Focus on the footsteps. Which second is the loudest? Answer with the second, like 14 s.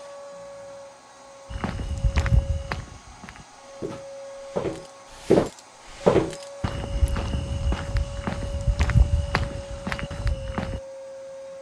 6 s.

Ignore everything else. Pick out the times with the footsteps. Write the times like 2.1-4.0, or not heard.
1.5-10.8.